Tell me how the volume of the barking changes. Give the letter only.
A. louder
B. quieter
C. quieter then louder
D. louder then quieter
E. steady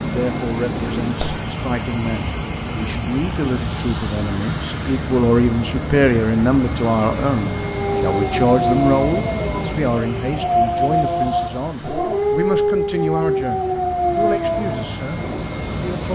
E.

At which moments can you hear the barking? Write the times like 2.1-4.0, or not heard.
7.6-15.4.